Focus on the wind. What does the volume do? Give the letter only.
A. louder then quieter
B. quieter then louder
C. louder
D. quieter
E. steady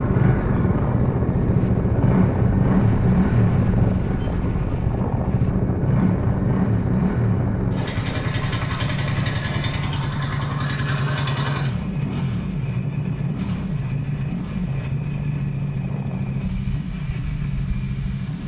D.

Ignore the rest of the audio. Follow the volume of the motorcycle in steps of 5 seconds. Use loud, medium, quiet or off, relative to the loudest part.
loud, loud, loud, medium.